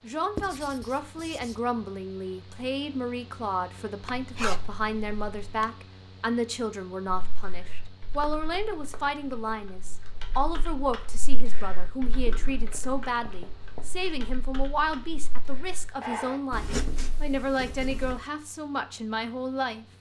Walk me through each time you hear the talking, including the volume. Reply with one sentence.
The talking can be heard from 0.0 to 19.9 s, at a steady volume.